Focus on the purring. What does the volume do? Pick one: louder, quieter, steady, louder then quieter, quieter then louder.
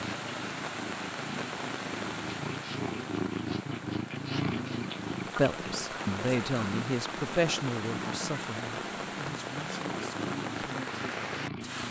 louder then quieter.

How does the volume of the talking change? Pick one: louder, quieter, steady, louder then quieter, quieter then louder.
quieter.